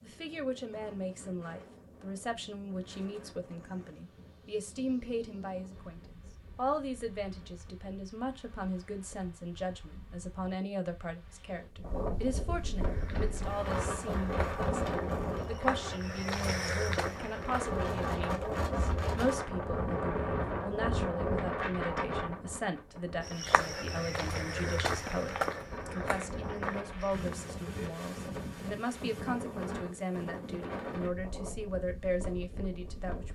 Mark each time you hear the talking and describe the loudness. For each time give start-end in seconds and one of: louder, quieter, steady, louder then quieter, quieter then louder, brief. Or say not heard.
0.0-33.3 steady.